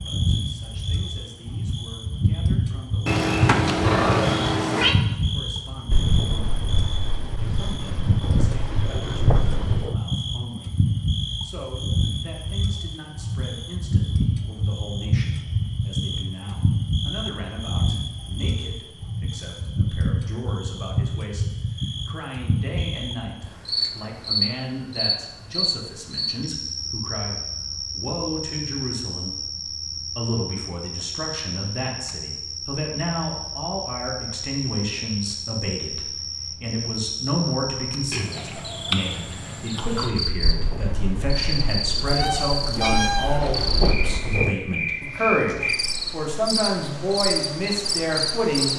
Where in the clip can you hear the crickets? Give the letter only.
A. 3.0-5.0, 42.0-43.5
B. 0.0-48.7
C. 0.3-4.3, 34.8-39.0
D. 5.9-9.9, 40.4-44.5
B.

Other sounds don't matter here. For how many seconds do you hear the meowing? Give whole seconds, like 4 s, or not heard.
3 s.